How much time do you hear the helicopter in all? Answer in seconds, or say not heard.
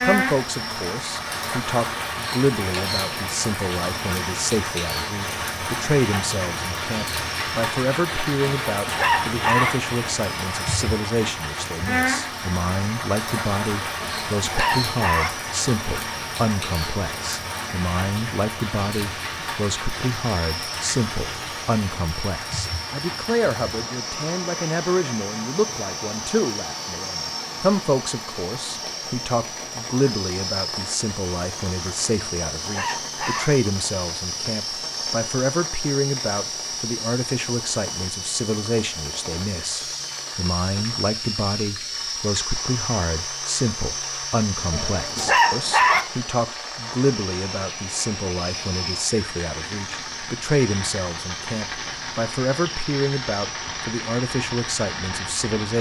56 s.